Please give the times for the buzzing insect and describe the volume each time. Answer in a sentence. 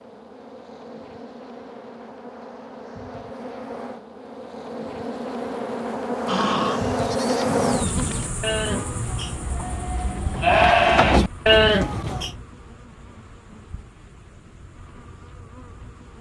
You can hear the buzzing insect from 0.0 to 16.1 s, getting louder then quieter.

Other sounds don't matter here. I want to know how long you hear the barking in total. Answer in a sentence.
You can't hear the barking here.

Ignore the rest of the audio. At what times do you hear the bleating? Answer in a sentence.
The bleating can be heard from 6.2 to 12.3 s.